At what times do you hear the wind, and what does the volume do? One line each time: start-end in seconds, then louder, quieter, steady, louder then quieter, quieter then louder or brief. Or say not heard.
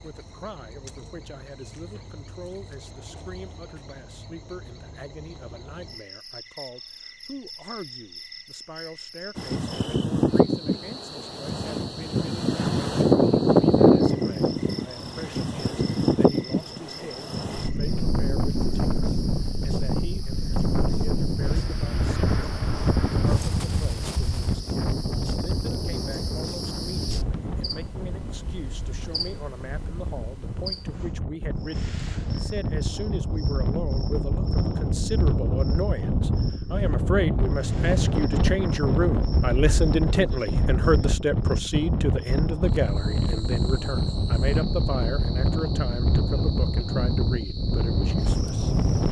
9.3-49.0 quieter then louder.